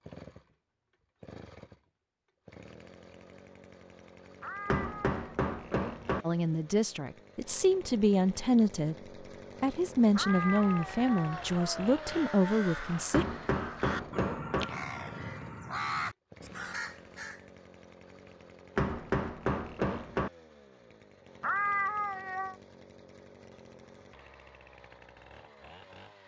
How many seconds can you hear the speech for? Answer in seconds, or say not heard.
6 s.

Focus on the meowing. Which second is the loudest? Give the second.
22 s.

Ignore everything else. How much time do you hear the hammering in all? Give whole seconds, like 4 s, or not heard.
5 s.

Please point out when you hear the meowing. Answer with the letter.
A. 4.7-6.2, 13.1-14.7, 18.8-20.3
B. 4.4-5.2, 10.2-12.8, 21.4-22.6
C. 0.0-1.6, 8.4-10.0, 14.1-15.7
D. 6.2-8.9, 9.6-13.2
B.